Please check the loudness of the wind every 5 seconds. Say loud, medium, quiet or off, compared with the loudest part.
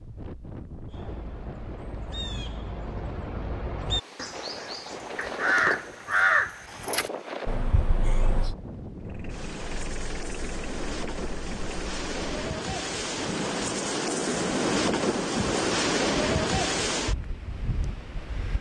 quiet, medium, loud, loud.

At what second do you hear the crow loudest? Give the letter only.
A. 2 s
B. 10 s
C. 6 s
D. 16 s
C.